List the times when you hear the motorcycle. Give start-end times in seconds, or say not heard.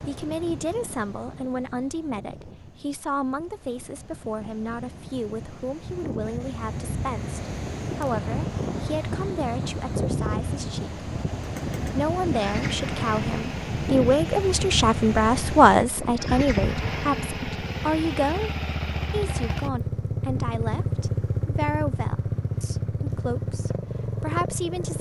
11.3-24.9.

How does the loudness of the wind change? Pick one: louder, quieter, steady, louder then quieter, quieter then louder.
louder.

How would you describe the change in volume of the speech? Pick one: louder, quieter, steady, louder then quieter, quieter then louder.
louder then quieter.